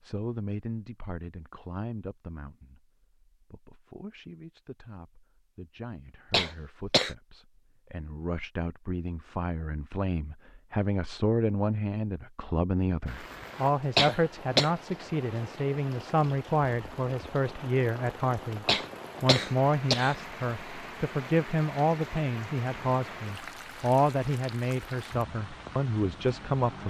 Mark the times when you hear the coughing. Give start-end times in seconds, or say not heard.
6.3-7.2, 13.9-14.7, 18.6-20.1.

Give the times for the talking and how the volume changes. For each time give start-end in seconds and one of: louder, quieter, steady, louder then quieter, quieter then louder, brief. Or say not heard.
0.0-26.8 louder.